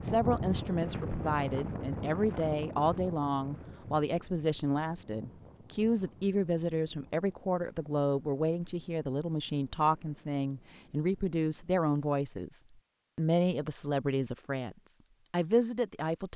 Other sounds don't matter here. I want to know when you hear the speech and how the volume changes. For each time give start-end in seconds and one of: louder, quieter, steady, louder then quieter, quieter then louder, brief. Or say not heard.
0.0-16.3 steady.